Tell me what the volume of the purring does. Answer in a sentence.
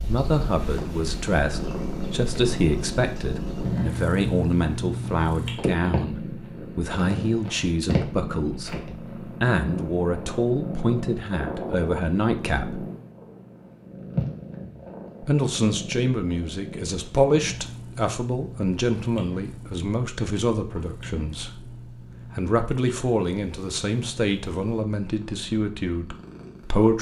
The volume of the purring goes down.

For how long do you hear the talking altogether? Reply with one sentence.
You can hear the talking for 24 seconds altogether.